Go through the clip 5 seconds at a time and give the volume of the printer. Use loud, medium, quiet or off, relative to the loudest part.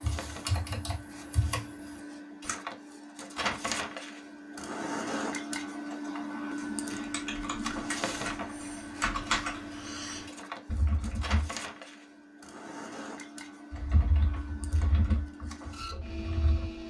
loud, loud, medium, medium.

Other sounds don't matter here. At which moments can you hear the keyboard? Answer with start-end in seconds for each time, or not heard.
0.0-2.5, 6.5-11.4, 13.7-16.7.